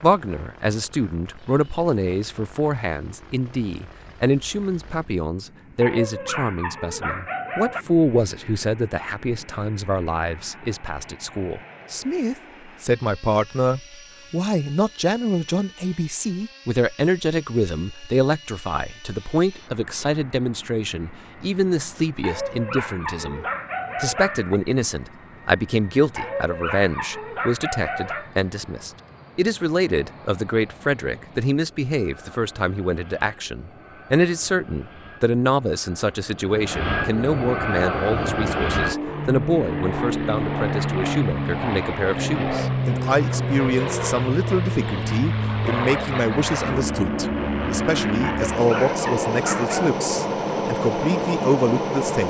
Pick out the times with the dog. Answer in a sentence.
You can hear the dog from 5.8 to 7.8 s, from 22.2 to 24.6 s, from 26.1 to 28.3 s and from 48.2 to 49.9 s.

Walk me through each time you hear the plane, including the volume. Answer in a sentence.
You can hear the plane from 0.0 to 52.2 s, getting louder.